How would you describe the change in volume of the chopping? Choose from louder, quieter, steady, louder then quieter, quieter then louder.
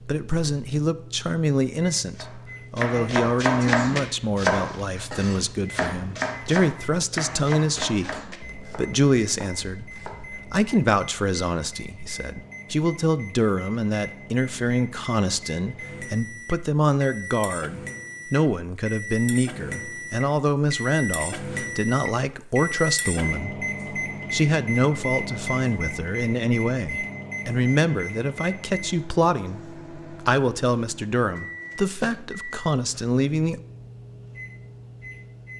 quieter.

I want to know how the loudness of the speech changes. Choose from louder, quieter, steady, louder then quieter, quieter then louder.
steady.